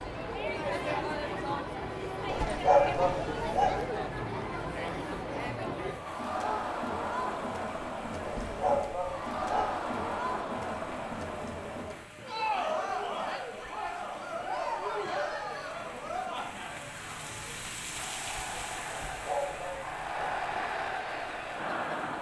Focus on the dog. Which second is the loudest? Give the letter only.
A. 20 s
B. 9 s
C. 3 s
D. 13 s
C.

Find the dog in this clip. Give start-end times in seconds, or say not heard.
2.2-3.8, 8.2-9.8, 18.9-20.4.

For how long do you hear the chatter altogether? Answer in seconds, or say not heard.
22 s.